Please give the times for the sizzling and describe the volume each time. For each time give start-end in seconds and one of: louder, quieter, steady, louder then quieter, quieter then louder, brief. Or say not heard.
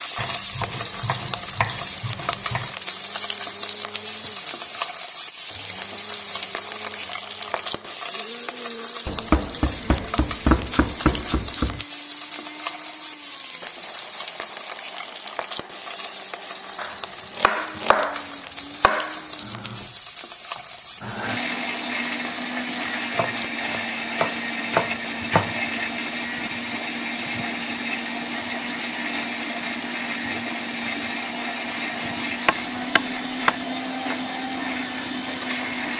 0.0-35.9 quieter.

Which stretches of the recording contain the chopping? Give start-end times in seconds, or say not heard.
0.1-2.7, 9.1-11.8, 16.8-19.2, 23.1-25.6, 32.5-33.6.